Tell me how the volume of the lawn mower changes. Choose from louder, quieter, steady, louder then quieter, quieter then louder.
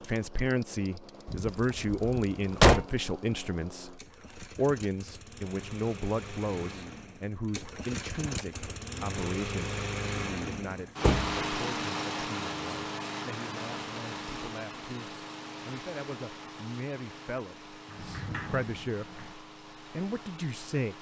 louder then quieter.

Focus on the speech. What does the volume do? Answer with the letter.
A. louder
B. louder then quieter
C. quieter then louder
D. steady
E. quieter
C.